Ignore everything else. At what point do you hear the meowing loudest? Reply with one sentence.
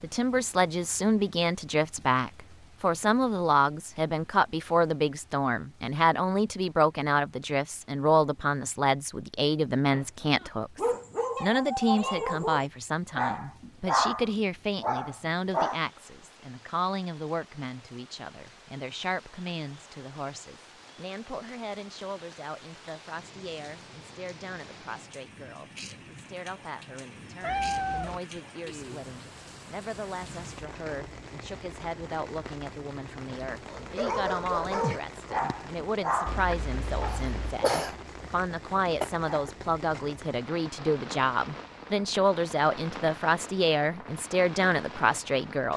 The volume of the meowing peaks at 28 seconds.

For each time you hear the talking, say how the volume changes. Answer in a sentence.
The talking can be heard from 0.0 to 45.7 s, getting quieter then louder.